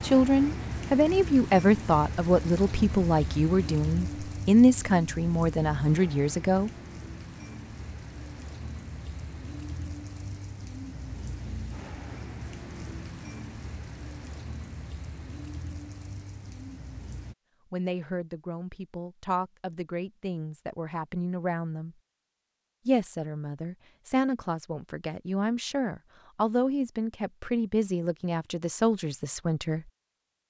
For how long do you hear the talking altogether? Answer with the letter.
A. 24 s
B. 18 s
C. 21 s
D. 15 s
B.